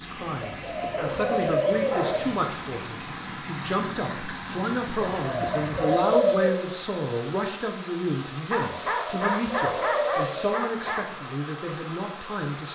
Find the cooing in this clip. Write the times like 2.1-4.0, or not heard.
0.4-2.1, 5.2-6.5, 8.7-10.5.